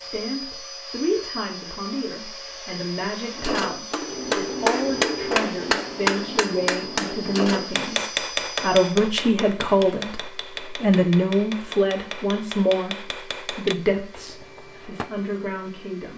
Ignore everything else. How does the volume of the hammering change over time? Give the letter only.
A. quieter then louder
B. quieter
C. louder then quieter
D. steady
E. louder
B.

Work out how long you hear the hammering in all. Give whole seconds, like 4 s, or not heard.
12 s.